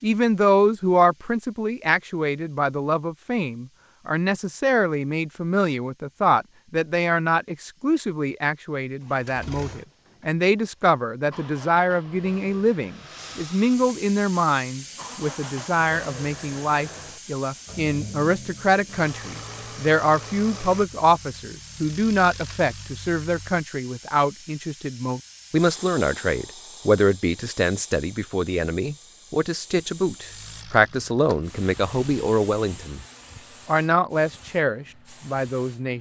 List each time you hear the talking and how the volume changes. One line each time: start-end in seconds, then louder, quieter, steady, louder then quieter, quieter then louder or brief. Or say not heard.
0.0-33.0 steady
33.6-35.9 brief.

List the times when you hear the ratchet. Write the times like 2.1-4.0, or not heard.
not heard.